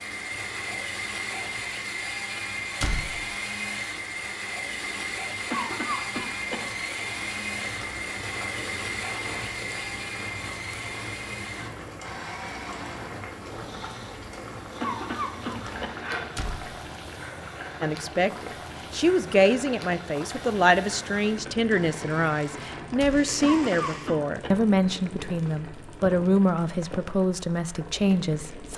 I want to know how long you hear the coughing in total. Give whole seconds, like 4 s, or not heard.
4 s.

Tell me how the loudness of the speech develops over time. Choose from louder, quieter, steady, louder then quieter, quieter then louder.
steady.